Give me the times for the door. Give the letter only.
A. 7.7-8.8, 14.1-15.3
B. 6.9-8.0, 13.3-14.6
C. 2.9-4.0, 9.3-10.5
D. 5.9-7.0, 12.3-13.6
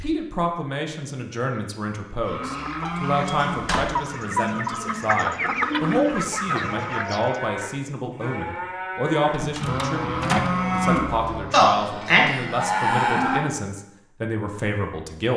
C.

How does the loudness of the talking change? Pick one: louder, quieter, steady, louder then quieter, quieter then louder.
steady.